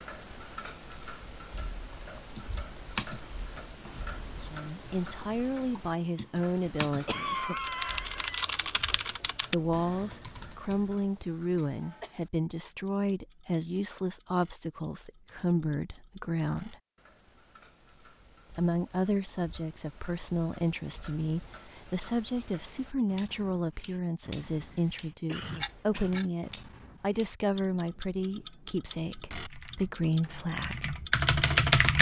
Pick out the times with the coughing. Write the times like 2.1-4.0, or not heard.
7.0-8.4, 11.6-12.2, 24.5-26.3.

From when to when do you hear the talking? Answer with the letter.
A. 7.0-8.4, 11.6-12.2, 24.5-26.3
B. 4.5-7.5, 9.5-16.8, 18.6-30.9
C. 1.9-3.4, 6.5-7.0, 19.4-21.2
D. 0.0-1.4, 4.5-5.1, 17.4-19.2
B.